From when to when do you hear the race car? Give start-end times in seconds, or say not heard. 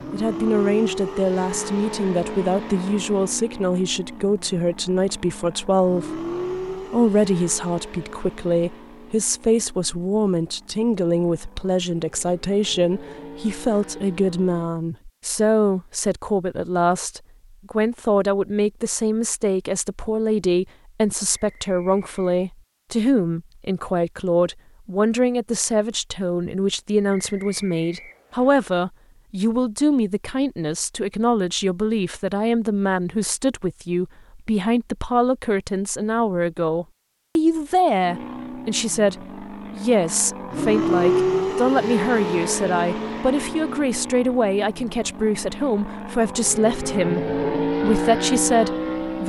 0.0-14.8, 38.0-49.2.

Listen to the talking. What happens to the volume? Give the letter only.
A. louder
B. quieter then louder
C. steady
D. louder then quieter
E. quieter
C.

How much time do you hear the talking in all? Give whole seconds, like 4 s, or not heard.
49 s.